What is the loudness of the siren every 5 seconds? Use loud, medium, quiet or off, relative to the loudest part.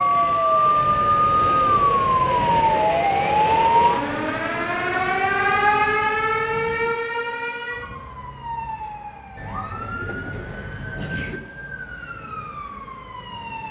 loud, medium, quiet.